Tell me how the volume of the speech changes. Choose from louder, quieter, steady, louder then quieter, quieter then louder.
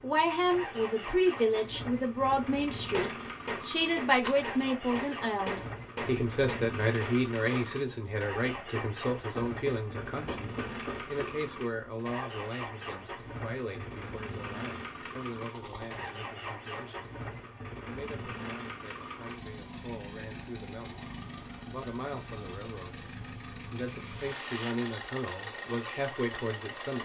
quieter then louder.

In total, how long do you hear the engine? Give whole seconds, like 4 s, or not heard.
27 s.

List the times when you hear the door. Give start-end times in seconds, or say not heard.
not heard.